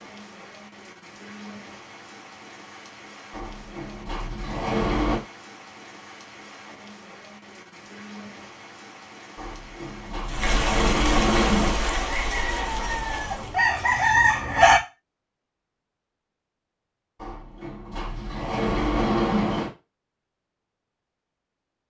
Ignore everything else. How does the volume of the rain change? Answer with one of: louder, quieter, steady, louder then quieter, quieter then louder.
louder.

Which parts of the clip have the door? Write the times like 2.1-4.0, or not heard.
3.3-5.2, 9.3-11.8, 17.2-19.7.